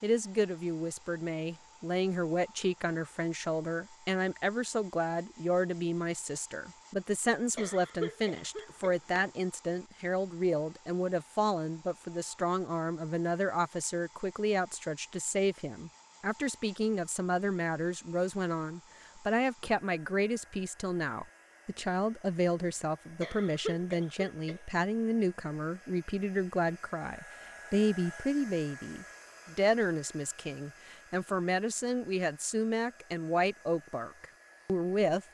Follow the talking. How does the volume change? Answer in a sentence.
The volume of the talking stays about the same.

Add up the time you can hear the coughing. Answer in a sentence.
You can hear the coughing for 3 seconds altogether.